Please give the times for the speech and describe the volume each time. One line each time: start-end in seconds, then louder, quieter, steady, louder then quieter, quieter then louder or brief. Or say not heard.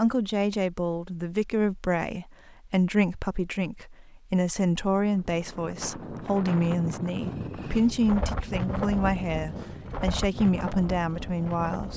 0.0-11.9 steady.